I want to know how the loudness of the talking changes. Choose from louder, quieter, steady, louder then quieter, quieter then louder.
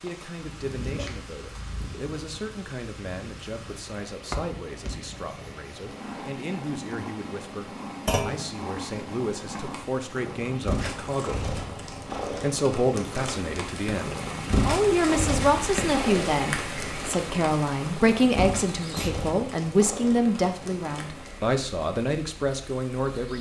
louder.